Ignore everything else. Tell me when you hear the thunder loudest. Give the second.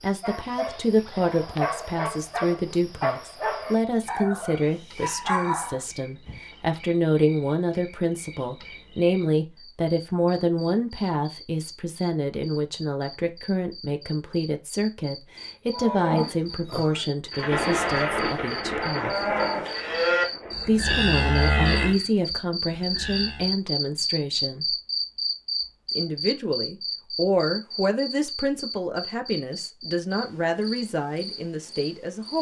18 s.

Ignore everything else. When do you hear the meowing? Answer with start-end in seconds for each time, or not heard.
not heard.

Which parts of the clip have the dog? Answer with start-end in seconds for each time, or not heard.
0.2-6.4.